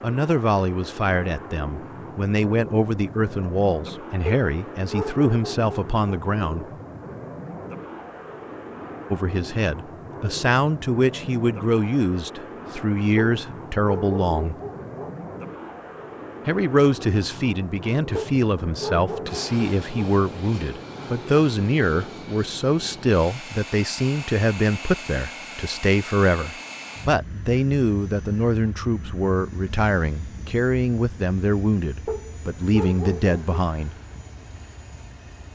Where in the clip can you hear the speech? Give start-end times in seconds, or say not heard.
0.0-6.7, 9.1-14.6, 16.4-34.0.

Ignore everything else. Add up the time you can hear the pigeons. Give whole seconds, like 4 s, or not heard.
not heard.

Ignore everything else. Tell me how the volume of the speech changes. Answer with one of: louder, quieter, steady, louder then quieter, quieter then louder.
steady.